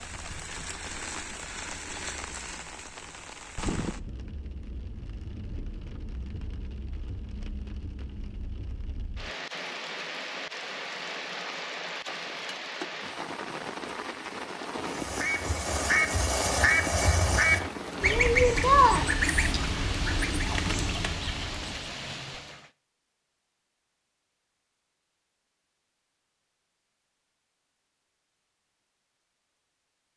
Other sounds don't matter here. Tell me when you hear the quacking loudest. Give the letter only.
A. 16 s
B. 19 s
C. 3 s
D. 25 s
B.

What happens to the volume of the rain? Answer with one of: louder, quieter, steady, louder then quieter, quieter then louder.
quieter then louder.